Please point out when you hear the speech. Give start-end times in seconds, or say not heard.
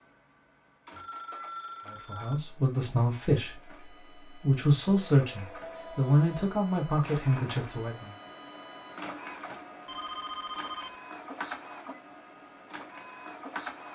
1.9-8.2.